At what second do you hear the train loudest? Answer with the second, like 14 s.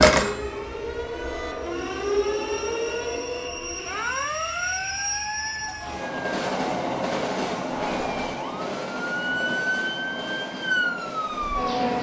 7 s.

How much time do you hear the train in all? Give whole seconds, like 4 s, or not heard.
12 s.